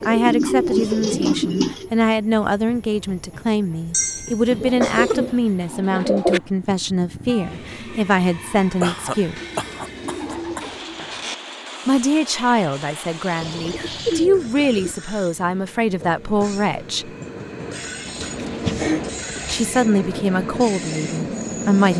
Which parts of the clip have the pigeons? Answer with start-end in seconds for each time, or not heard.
0.0-1.9, 4.5-6.4, 9.3-11.3, 13.4-14.9, 17.7-19.8.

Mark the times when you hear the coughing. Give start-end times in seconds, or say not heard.
3.9-5.2, 8.8-10.7, 18.2-19.1.